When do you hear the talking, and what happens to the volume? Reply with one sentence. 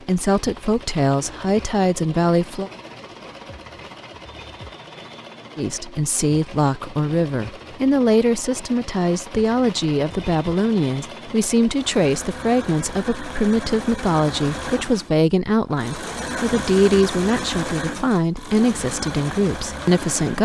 The talking can be heard briefly from 0.1 to 2.7 s; and from 5.5 to 20.4 s, at a steady volume.